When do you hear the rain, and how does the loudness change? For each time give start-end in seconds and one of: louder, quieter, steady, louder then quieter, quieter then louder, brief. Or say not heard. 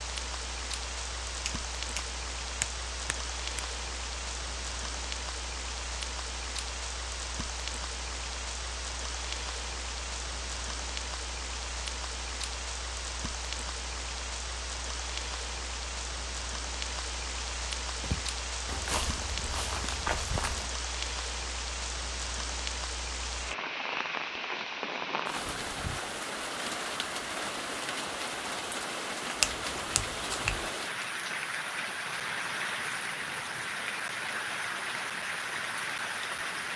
0.0-36.7 steady.